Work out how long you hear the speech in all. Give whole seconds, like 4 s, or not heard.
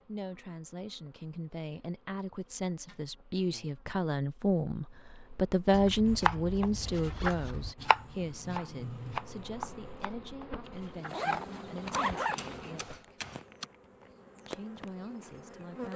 15 s.